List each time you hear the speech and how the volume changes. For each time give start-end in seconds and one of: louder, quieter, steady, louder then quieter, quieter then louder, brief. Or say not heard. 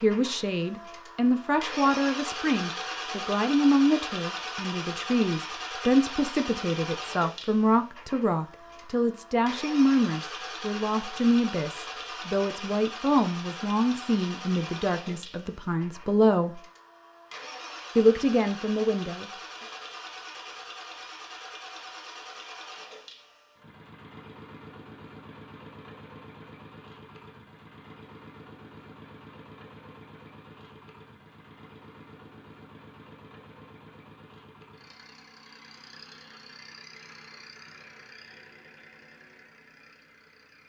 0.0-16.6 steady
17.9-19.2 brief.